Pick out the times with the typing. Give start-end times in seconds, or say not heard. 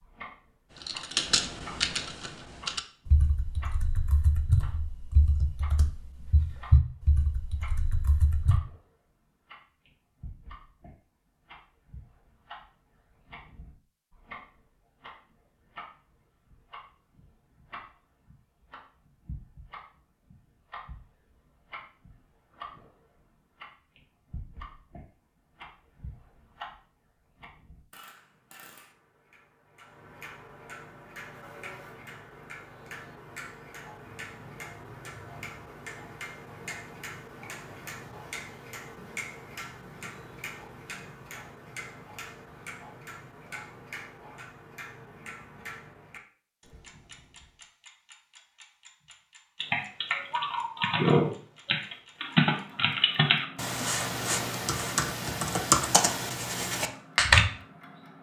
0.8-8.6, 49.6-57.5.